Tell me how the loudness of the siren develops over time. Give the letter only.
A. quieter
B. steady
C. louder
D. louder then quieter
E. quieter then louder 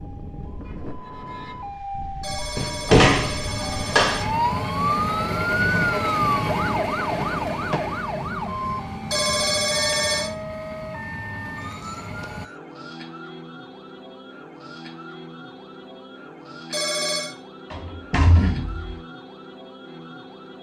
D.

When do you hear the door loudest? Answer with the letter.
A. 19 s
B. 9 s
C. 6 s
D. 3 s
D.